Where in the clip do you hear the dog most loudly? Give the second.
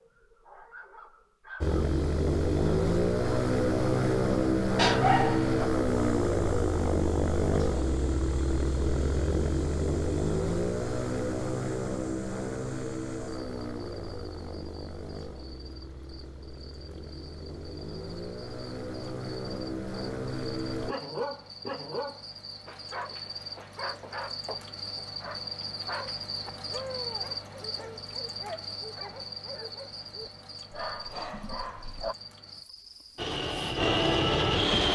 5 s.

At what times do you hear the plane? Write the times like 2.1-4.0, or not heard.
1.6-20.9, 33.1-34.9.